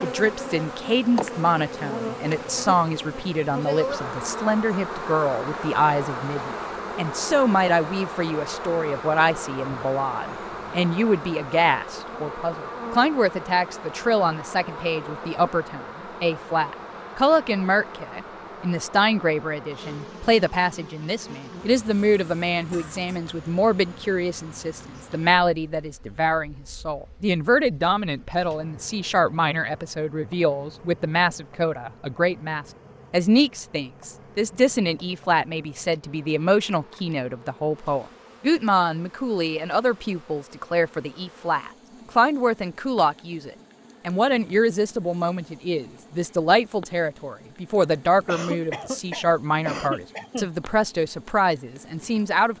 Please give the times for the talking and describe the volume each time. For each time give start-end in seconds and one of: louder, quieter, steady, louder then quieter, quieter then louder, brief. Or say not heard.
0.0-52.5 steady.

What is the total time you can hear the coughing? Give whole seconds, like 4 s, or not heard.
4 s.